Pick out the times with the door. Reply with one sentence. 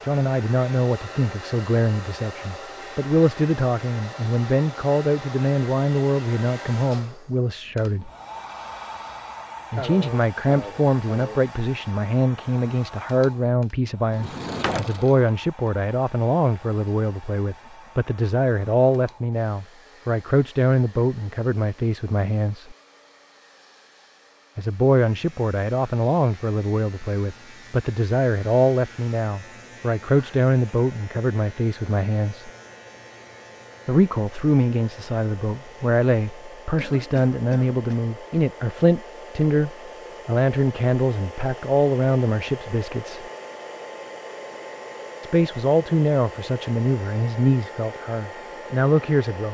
The door can be heard from 14.1 to 15.3 s.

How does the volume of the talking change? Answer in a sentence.
The loudness of the talking stays about the same.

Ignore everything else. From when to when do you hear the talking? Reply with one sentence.
The talking can be heard from 0.1 to 8.1 s, from 9.7 to 22.8 s, from 24.6 to 32.5 s, from 33.9 to 43.2 s and from 45.2 to 49.4 s.